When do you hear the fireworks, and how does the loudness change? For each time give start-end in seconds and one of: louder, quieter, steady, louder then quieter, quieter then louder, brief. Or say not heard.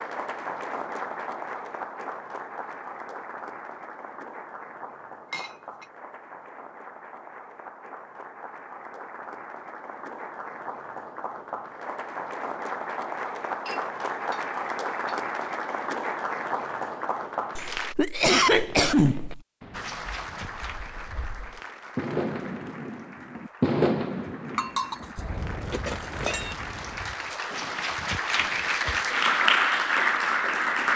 18.4-28.8 louder then quieter.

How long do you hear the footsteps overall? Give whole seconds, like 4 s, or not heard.
not heard.